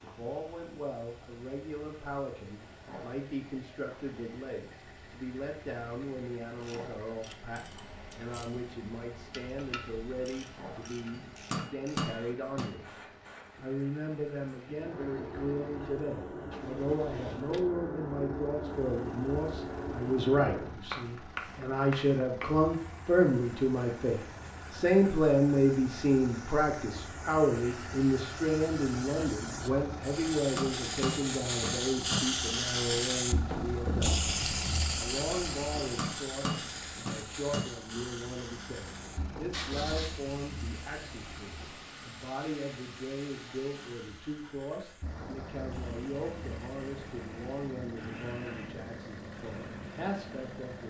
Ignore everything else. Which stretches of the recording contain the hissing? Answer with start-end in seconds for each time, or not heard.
0.0-50.7.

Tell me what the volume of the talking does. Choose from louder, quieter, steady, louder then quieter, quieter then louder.
louder then quieter.